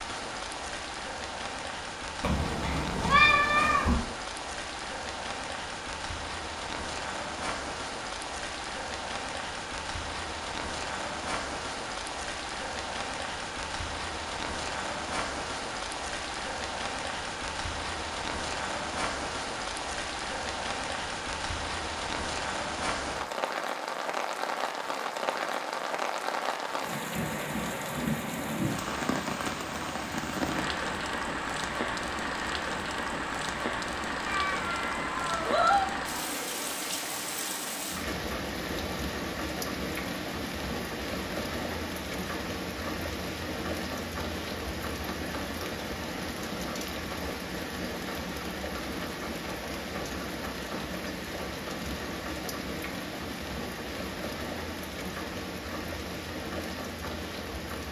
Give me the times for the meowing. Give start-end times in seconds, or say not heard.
2.2-4.0, 34.2-35.9.